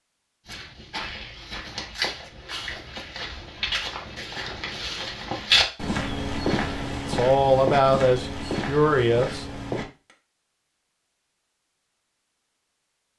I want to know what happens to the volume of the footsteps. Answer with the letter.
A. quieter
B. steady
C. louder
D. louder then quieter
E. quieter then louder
D.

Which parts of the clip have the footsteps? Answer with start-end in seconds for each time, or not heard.
0.5-9.8.